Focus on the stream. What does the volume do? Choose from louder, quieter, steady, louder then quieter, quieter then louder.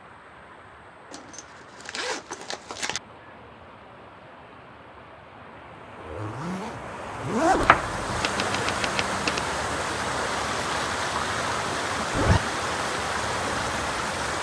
louder.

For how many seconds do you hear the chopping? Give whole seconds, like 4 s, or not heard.
2 s.